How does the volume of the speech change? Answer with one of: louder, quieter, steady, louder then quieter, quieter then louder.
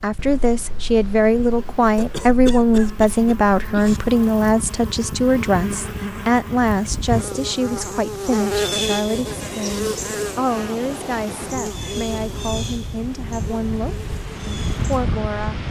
quieter.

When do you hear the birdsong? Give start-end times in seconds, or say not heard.
not heard.